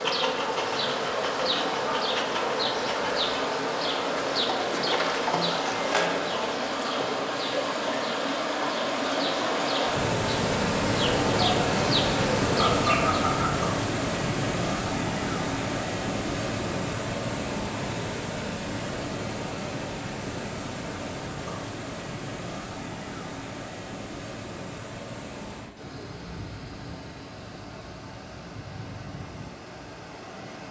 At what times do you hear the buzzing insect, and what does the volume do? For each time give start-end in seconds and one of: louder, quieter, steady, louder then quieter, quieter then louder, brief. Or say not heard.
0.0-13.2 quieter then louder.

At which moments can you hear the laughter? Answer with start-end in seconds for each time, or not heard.
12.5-13.7.